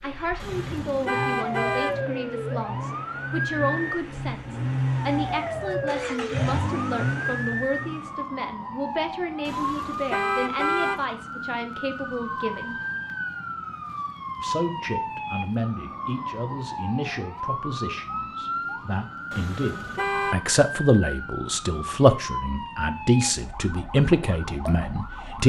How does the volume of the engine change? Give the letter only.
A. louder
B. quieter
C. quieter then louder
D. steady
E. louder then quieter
A.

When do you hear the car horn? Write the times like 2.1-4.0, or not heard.
0.4-2.0, 9.4-11.1, 19.3-20.4.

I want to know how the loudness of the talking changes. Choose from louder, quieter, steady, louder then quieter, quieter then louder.
louder.